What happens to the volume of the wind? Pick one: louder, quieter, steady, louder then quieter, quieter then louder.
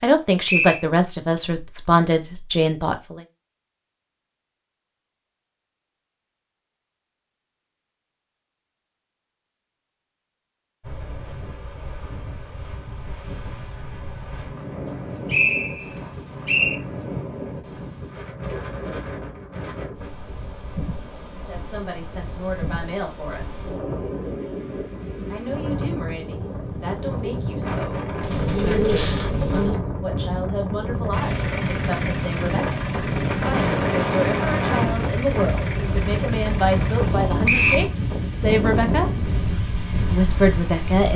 louder.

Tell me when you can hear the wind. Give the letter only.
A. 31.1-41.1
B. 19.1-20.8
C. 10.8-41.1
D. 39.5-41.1
C.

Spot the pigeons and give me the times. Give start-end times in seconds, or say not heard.
28.2-29.8.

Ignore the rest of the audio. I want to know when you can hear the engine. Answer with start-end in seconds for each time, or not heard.
31.1-41.1.